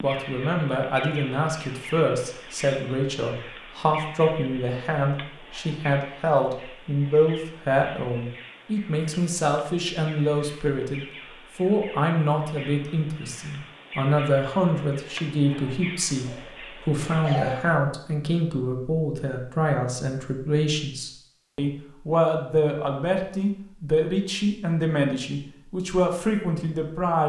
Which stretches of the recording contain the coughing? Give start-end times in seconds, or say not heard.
16.2-17.8.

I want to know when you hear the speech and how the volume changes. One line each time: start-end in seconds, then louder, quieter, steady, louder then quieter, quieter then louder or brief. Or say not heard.
0.0-27.2 steady.